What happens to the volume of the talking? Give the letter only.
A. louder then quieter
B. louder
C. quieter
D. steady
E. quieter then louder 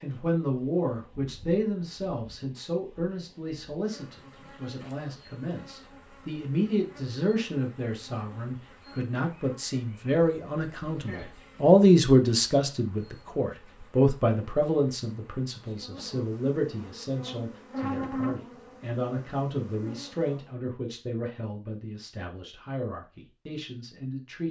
A.